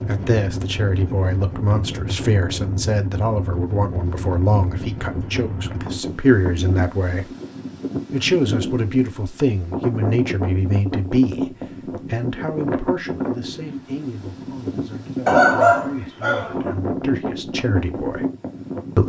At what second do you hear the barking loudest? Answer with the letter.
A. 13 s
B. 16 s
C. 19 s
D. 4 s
B.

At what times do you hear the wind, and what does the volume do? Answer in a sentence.
The wind can be heard from 0.0 to 19.0 s, at a steady volume.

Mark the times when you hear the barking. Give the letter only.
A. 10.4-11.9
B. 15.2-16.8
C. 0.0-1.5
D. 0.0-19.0
B.